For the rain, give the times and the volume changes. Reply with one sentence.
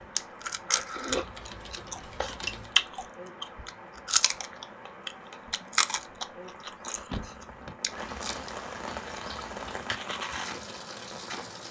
You can hear the rain from 0.0 to 11.6 s, getting louder.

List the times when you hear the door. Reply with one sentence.
The door can be heard from 7.0 to 7.8 s.